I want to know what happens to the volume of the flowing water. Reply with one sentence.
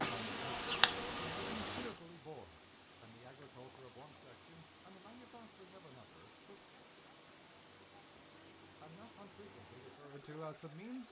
The volume of the flowing water goes down.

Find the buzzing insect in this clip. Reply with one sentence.
You can hear the buzzing insect from 0.0 to 2.0 s.